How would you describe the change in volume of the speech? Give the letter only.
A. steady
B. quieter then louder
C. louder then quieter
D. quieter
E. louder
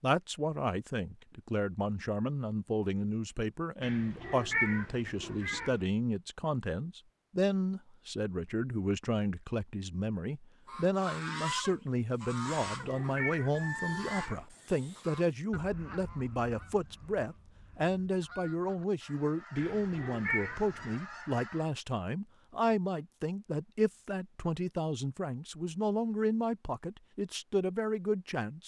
A.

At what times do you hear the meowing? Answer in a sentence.
The meowing can be heard from 3.8 to 5.8 s, from 12.4 to 14.4 s and from 19.6 to 20.9 s.